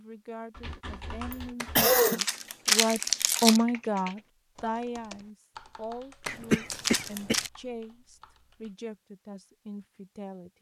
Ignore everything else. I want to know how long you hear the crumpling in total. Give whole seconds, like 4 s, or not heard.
3 s.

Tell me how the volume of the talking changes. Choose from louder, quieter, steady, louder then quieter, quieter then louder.
louder then quieter.